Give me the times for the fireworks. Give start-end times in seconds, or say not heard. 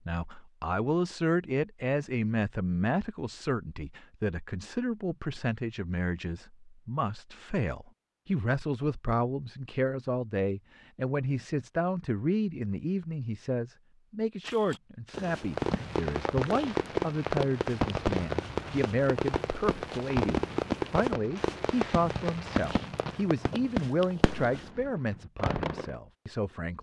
15.3-25.9.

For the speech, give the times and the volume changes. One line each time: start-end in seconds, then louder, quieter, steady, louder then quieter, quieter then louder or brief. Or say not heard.
0.1-26.7 steady.